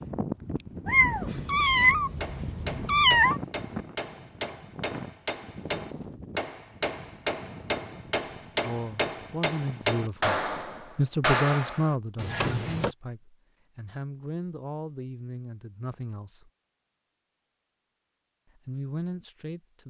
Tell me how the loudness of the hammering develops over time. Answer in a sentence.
The loudness of the hammering goes up.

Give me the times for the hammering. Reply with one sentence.
You can hear the hammering from 1.2 to 12.9 s.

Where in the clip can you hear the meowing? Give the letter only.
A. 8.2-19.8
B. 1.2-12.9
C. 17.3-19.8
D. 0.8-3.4
D.